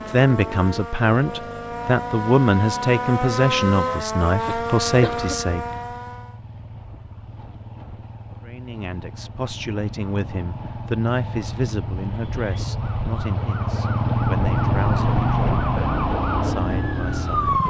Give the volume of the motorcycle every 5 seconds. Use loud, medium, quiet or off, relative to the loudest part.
quiet, quiet, loud, loud.